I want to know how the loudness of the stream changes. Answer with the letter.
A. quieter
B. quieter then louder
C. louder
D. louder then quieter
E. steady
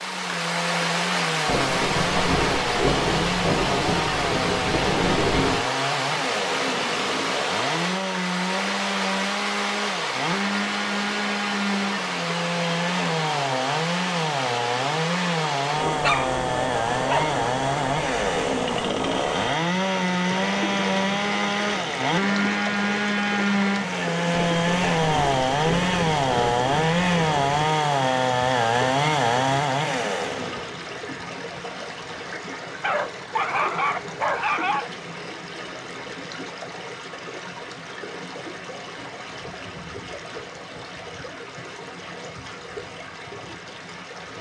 A.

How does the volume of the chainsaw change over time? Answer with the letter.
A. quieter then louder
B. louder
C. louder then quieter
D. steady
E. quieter
B.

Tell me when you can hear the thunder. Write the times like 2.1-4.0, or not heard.
1.4-5.7, 24.3-27.6.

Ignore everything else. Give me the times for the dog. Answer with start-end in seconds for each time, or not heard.
15.8-17.4, 32.8-34.9.